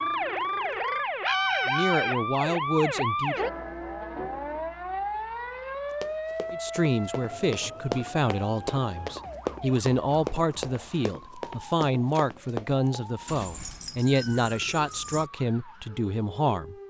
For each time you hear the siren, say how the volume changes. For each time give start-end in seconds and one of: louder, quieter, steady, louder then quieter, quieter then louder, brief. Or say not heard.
0.0-16.8 quieter.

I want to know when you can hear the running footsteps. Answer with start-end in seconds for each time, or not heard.
6.0-13.0.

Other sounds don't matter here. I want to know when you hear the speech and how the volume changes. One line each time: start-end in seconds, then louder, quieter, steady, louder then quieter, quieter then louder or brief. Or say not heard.
1.6-3.4 brief
6.5-16.8 steady.